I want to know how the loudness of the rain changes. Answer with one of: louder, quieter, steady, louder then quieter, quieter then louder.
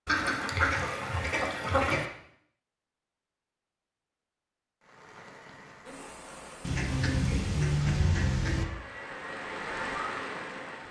louder.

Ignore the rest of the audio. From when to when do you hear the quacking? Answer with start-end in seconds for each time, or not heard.
0.1-2.0, 6.6-8.7.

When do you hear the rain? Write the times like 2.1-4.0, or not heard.
4.8-10.8.